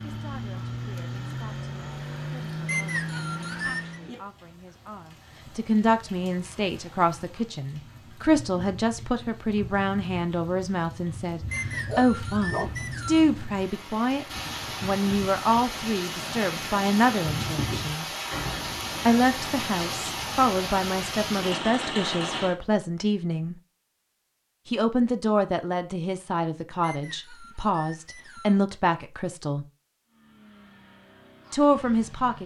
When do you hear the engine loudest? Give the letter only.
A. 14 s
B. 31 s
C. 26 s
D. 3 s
D.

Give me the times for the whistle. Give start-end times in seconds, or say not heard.
2.6-4.0, 11.5-13.2, 26.8-28.6.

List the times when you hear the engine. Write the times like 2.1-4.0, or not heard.
0.0-4.2, 30.1-32.4.